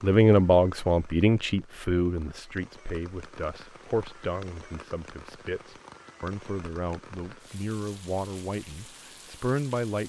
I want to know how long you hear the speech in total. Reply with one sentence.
You can hear the speech for 10 seconds altogether.